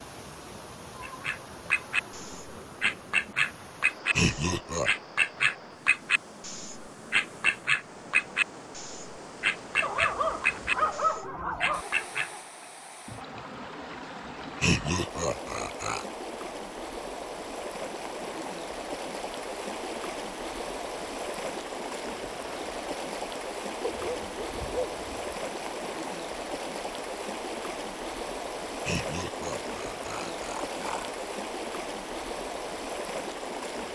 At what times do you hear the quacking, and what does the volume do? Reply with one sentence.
You can hear the quacking from 1.0 to 12.3 s, at a steady volume.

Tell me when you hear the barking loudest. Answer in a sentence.
The loudest moment of the barking is at 11 seconds.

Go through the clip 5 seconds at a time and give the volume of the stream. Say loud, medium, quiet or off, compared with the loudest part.
medium, medium, medium, loud, loud, loud, loud.